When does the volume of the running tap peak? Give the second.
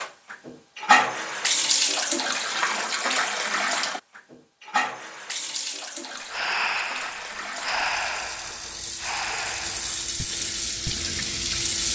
1 s.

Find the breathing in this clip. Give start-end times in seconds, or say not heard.
6.2-11.2.